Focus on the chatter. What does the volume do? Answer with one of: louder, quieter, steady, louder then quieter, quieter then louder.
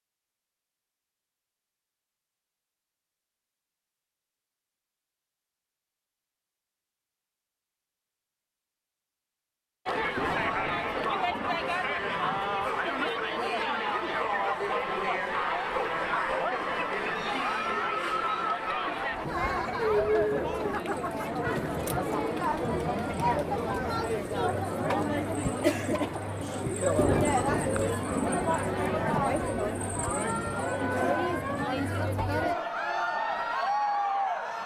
steady.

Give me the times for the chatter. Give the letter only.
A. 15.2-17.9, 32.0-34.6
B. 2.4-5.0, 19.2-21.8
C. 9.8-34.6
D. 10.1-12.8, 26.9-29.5
C.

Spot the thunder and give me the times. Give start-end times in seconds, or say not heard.
10.1-12.8, 26.9-29.5.